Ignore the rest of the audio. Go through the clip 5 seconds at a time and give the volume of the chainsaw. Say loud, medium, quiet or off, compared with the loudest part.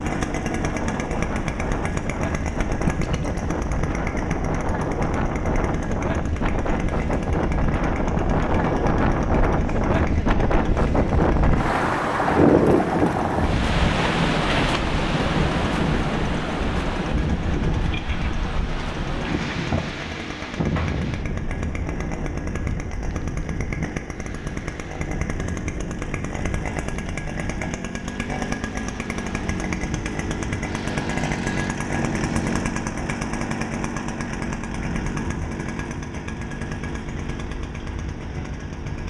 loud, medium, medium, medium, medium, loud, loud, medium.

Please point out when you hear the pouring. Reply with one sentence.
You can hear the pouring from 2.9 to 3.4 s.